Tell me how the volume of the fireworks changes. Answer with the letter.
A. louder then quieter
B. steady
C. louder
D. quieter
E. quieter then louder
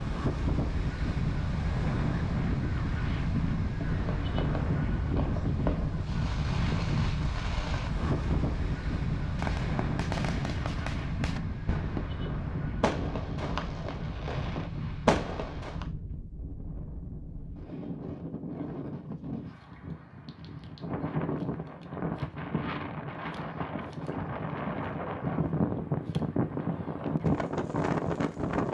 C.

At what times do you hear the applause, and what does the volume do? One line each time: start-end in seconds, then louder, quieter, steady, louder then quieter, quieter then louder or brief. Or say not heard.
not heard.